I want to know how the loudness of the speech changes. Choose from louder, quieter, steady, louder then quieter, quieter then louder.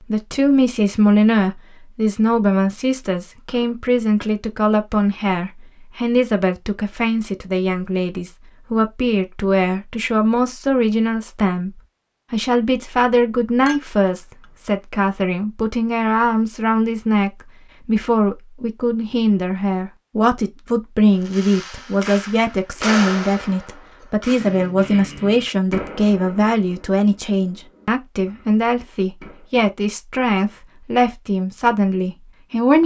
steady.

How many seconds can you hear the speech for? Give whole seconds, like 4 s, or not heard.
32 s.